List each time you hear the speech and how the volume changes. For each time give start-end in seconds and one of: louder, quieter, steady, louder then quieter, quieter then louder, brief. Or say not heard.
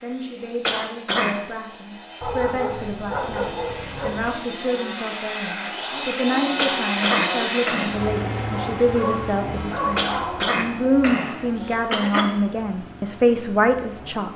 0.0-14.3 louder.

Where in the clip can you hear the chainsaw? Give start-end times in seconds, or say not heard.
0.0-14.3.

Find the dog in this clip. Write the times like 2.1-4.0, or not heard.
2.2-4.3, 8.5-10.6.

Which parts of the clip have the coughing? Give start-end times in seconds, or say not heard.
0.7-1.4, 6.5-7.9, 9.9-12.2.